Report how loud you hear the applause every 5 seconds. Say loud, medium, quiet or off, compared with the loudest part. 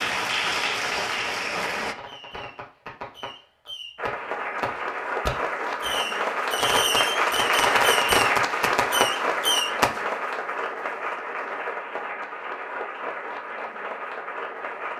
loud, loud, medium.